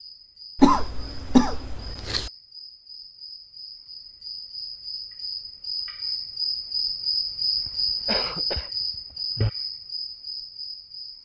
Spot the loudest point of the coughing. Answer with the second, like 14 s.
1 s.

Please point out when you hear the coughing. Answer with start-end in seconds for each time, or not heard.
0.6-2.3, 7.5-9.5.